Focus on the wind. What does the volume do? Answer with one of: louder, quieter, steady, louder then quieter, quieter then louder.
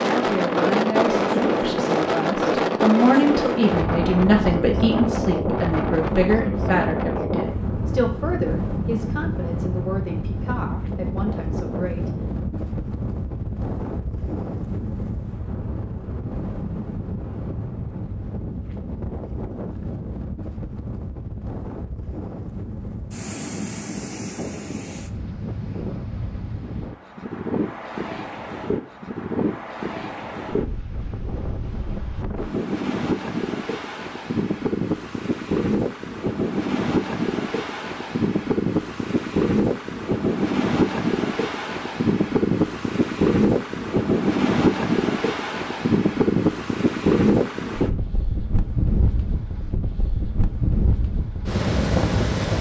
quieter then louder.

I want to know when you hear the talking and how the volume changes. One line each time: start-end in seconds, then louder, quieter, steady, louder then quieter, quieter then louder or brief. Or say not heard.
0.0-12.2 louder then quieter.